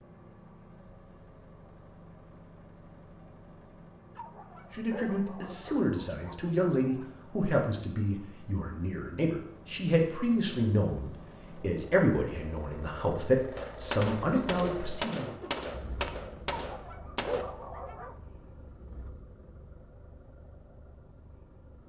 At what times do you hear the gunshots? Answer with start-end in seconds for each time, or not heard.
13.6-17.4.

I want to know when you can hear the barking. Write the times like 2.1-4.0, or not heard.
4.2-7.1, 16.6-18.1.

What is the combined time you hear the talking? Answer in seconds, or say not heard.
11 s.